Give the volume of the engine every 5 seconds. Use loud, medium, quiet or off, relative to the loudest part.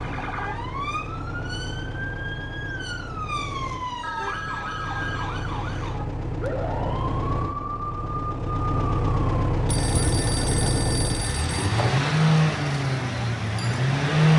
quiet, medium, loud.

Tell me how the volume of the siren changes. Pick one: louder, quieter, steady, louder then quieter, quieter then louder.
steady.